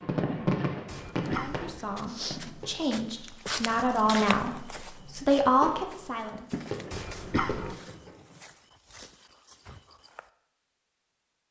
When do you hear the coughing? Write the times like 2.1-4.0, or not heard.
0.8-1.8, 6.9-7.8.